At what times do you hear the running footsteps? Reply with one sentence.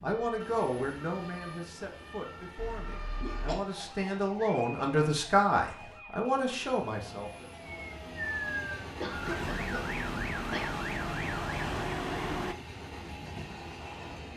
You can't hear the running footsteps here.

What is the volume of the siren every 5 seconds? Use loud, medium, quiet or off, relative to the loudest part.
quiet, medium, loud.